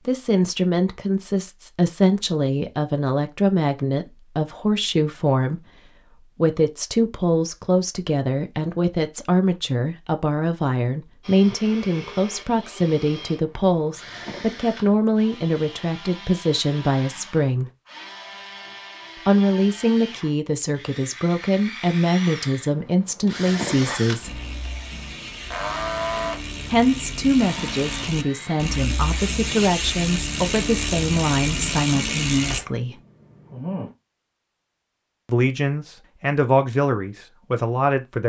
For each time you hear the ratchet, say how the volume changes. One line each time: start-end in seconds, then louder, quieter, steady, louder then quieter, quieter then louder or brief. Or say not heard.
23.6-32.6 louder.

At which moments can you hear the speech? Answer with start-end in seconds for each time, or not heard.
0.1-17.7, 19.1-24.4, 26.7-33.0, 35.2-38.2.